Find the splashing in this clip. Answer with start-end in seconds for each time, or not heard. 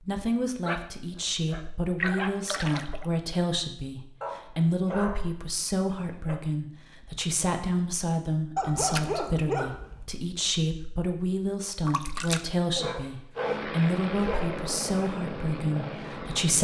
2.0-3.0, 8.9-9.3, 11.8-12.5.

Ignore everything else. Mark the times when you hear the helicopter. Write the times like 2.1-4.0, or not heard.
13.3-16.5.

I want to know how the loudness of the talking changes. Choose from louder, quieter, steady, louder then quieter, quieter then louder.
steady.